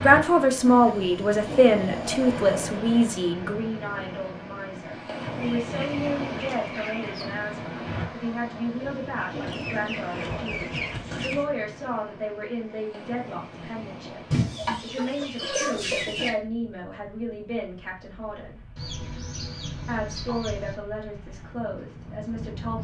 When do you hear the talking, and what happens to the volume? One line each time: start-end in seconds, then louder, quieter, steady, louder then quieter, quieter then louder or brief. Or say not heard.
0.0-18.6 quieter
19.9-22.7 brief.